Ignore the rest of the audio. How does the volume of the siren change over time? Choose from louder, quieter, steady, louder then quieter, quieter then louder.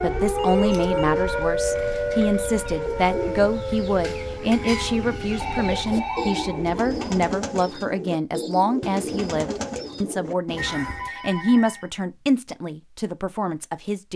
quieter.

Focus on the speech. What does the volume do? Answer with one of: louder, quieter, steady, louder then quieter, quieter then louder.
steady.